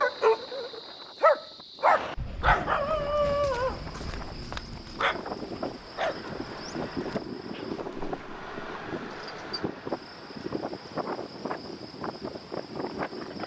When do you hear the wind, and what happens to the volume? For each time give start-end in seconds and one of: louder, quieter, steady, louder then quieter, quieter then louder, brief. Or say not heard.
0.0-13.4 louder.